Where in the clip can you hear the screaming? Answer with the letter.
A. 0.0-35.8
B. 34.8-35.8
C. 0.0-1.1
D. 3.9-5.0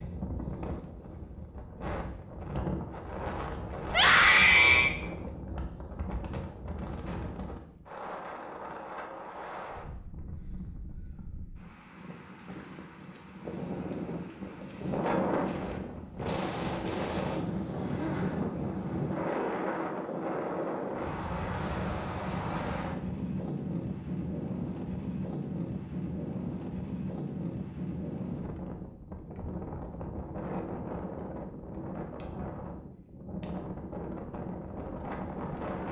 D.